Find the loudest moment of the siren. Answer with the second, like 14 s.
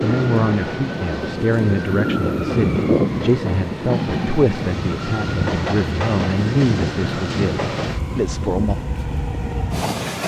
3 s.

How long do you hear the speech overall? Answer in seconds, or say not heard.
9 s.